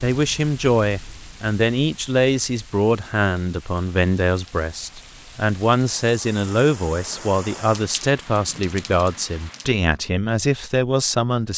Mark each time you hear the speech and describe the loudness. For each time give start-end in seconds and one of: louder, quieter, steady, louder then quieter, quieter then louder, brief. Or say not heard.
0.0-11.5 steady.